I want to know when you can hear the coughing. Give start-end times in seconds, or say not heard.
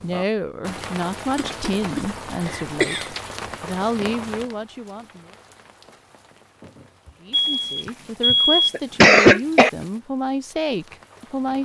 1.4-3.1, 7.8-9.7.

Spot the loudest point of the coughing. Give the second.
9 s.